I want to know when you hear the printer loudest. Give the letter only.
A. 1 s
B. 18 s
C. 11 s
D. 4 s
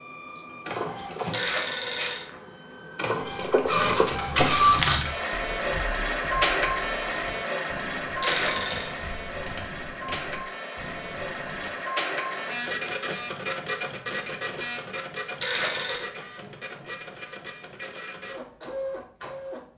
D.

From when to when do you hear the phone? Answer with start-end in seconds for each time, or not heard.
1.3-2.3, 8.2-8.9, 15.4-16.1.